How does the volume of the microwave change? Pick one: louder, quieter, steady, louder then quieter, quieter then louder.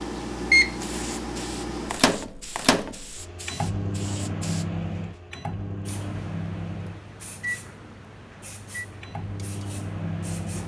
quieter.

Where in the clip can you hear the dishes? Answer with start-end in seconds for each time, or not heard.
not heard.